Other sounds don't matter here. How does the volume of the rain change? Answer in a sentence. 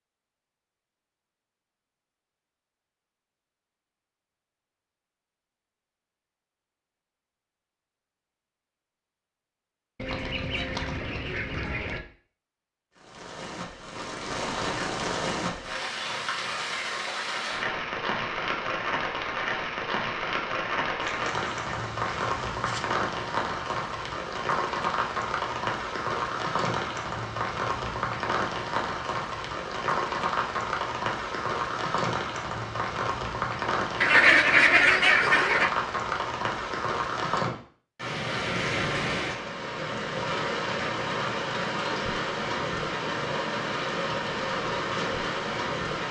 The loudness of the rain stays about the same.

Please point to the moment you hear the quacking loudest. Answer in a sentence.
The volume of the quacking peaks at 34 seconds.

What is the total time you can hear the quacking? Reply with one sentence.
You can hear the quacking for 6 seconds altogether.